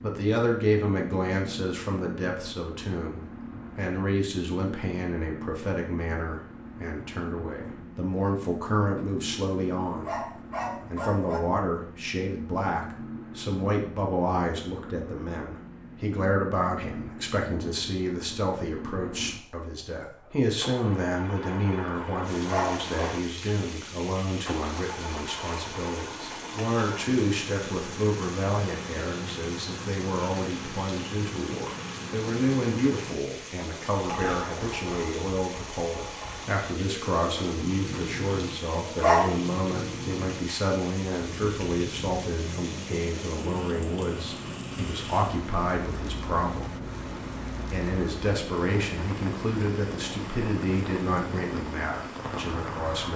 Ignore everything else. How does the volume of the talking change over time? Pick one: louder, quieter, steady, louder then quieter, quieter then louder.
steady.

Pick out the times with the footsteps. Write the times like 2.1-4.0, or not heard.
not heard.